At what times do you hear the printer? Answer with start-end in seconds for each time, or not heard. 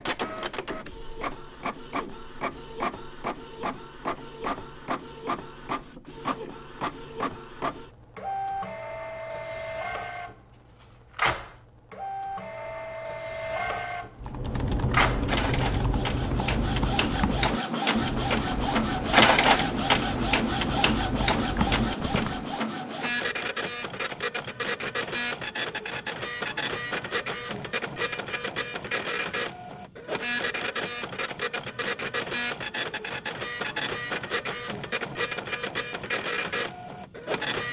0.0-37.6.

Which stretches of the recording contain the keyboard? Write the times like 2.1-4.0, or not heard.
14.2-22.6.